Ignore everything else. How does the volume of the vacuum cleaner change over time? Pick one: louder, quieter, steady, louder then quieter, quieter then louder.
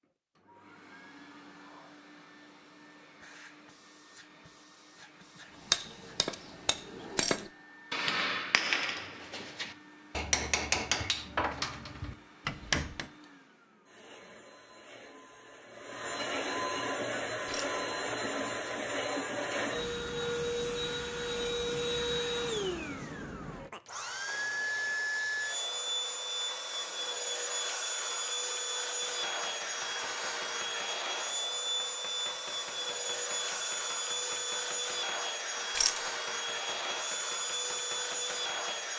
louder.